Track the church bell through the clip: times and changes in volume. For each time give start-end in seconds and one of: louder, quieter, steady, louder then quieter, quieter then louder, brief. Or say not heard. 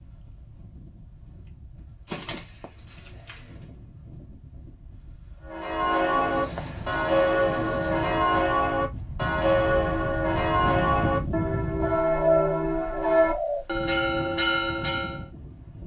5.5-15.2 steady.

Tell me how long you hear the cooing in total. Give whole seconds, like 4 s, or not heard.
5 s.